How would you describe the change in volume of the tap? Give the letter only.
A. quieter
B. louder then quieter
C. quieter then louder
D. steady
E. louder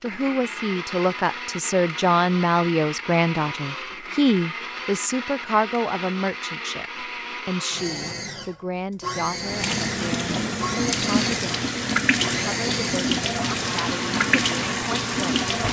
D.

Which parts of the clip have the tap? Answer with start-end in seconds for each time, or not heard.
9.4-15.6.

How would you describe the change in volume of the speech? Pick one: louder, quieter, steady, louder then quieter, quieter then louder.
quieter.